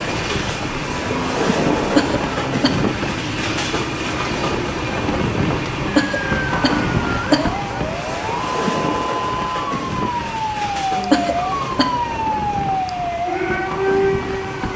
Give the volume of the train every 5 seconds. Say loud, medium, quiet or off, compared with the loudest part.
loud, loud, medium.